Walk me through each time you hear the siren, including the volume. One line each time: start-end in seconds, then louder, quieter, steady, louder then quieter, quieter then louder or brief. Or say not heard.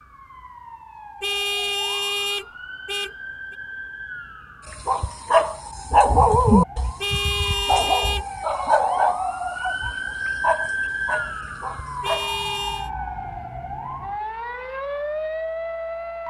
0.0-16.2 louder.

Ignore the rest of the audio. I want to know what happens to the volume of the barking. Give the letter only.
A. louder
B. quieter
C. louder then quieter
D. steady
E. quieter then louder
B.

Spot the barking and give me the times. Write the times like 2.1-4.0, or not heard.
4.7-12.4.